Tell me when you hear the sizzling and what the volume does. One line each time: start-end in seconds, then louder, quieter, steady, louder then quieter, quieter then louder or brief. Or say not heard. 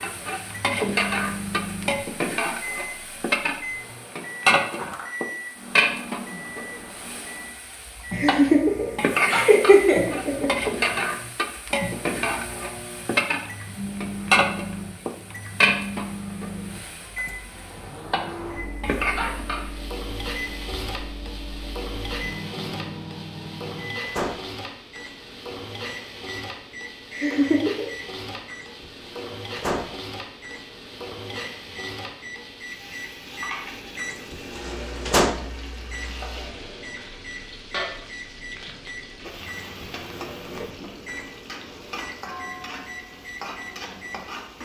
0.0-44.6 quieter.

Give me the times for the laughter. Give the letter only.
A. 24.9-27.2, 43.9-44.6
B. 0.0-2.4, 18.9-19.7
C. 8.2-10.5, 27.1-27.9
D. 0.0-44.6
C.